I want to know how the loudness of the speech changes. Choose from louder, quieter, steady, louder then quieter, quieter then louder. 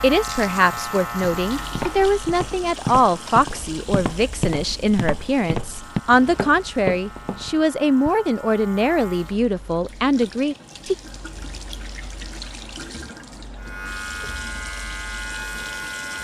steady.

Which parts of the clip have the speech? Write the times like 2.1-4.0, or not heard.
0.0-10.9.